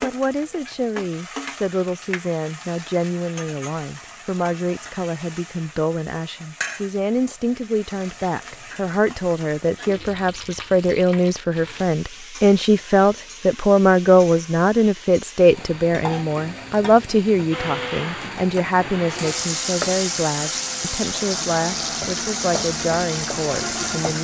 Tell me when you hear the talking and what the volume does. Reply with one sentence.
The talking can be heard from 0.0 to 24.1 s, getting louder then quieter.